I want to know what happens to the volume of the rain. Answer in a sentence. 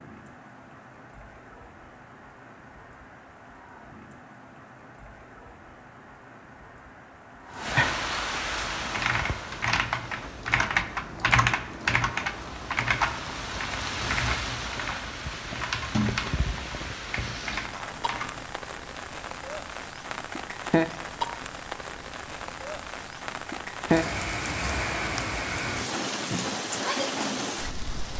The volume of the rain goes up.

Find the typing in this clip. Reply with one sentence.
You can hear the typing from 8.6 to 18.4 s.